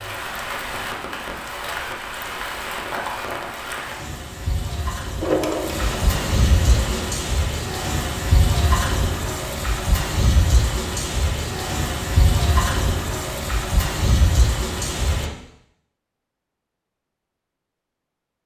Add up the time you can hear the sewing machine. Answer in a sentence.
The sewing machine can be heard for 2 seconds in total.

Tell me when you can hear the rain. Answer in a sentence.
You can hear the rain from 0.0 to 15.3 s.